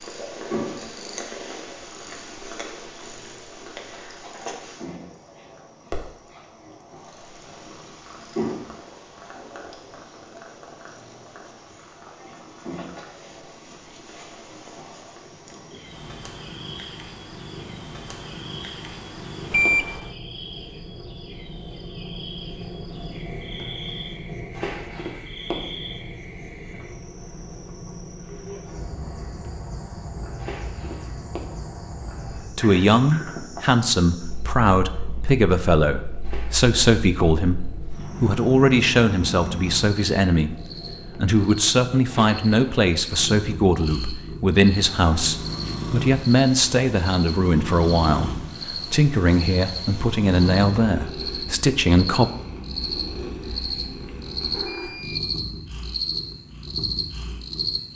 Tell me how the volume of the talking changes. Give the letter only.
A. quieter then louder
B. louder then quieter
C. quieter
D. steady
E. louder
D.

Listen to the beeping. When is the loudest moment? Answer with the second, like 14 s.
20 s.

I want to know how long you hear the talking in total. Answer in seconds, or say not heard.
20 s.